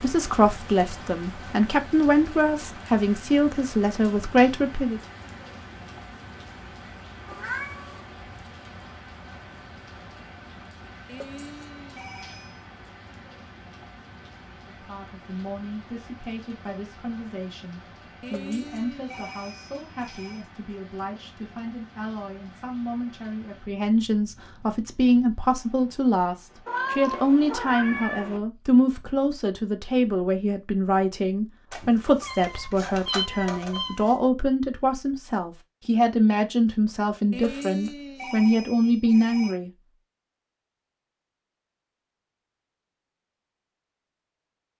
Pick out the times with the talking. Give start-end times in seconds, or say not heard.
0.0-5.0, 14.7-39.7.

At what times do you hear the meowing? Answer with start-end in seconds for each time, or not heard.
7.2-8.1, 26.6-28.4, 31.7-34.2.